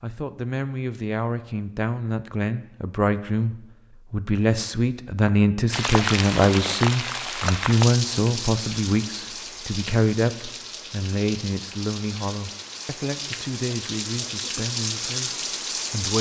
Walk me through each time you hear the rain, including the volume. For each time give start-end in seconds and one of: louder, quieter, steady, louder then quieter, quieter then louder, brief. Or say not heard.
5.7-16.1 quieter then louder.